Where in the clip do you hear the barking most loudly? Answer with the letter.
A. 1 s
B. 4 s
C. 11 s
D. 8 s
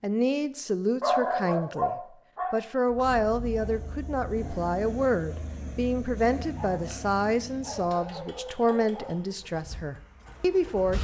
A.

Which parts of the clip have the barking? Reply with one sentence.
The barking can be heard from 1.0 to 3.0 s and from 6.5 to 9.2 s.